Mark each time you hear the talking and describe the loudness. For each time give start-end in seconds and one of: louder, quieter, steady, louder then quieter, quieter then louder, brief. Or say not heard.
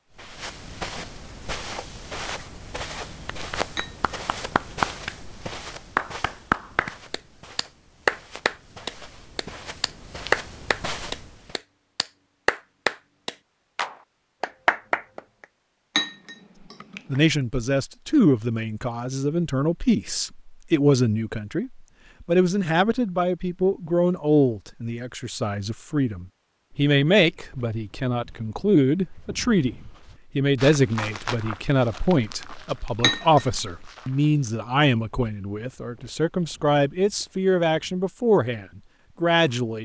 17.1-39.8 steady.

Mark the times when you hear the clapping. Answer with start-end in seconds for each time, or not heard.
3.5-15.4.